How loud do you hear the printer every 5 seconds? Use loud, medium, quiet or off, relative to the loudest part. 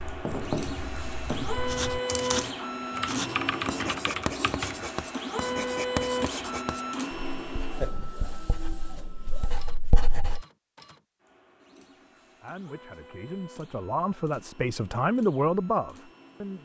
loud, loud, quiet, quiet.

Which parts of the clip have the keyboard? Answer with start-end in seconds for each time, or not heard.
0.0-4.8.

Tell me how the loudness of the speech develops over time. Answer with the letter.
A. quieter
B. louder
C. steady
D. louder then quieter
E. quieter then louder
B.